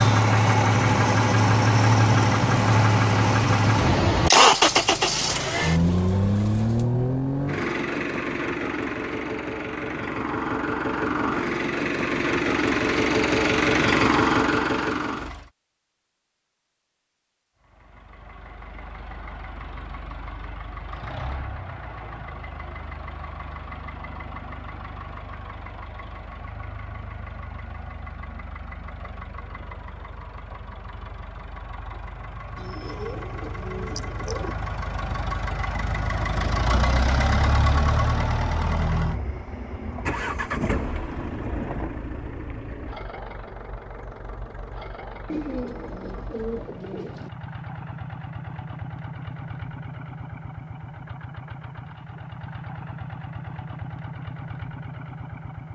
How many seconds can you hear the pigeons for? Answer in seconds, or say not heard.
6 s.